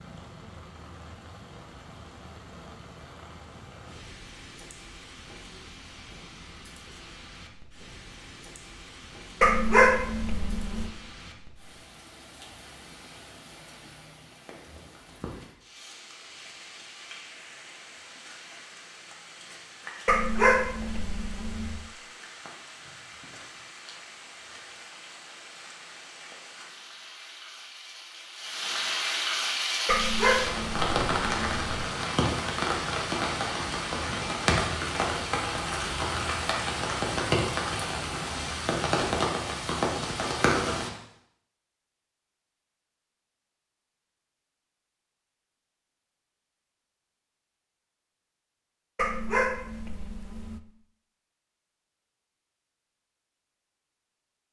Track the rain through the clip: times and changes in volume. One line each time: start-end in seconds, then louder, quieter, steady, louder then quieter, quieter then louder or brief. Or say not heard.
0.0-40.9 louder.